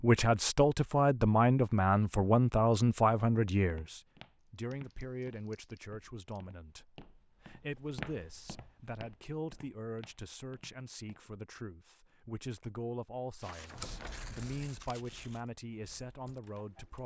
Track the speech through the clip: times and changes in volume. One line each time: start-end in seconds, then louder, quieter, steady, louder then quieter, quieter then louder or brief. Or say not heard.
0.0-17.0 quieter.